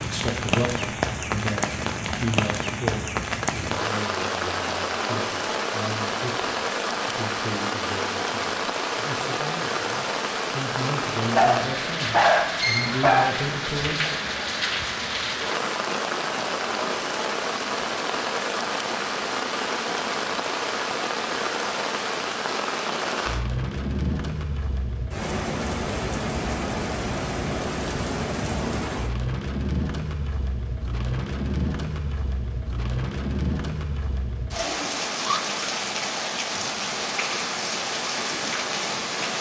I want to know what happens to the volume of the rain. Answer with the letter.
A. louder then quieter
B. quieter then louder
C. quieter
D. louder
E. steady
E.